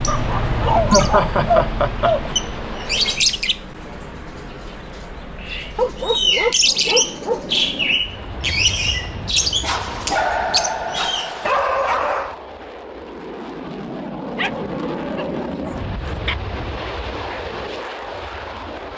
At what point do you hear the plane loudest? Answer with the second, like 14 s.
15 s.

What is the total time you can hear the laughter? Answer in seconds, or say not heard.
2 s.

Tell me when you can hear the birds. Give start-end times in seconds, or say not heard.
0.0-11.3.